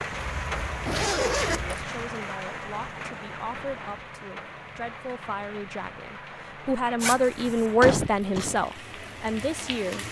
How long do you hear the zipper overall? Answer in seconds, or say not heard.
2 s.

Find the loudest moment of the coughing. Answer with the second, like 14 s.
8 s.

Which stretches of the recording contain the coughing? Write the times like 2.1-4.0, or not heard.
0.8-1.6, 7.8-8.6.